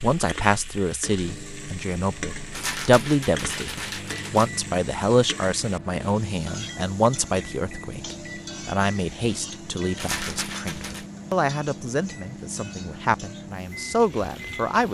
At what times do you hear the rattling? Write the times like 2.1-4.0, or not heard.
2.5-4.5, 9.9-11.1.